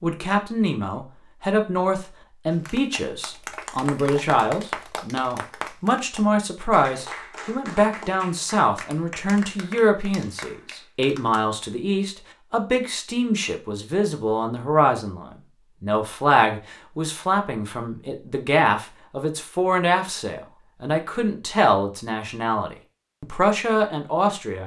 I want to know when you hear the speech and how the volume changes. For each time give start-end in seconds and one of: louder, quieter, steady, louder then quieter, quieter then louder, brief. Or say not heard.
0.0-24.6 steady.